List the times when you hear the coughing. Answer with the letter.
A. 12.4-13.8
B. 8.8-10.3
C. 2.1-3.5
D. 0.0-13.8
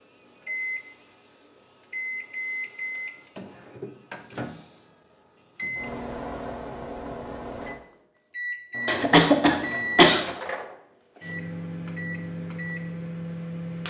B.